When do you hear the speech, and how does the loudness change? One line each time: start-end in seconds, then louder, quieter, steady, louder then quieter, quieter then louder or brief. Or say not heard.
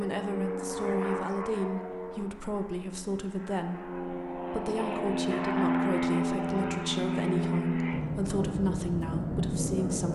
0.0-10.1 steady.